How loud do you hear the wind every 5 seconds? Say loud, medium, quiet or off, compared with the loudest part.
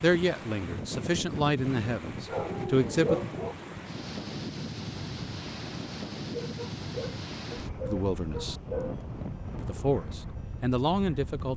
loud, loud, medium.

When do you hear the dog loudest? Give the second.
3 s.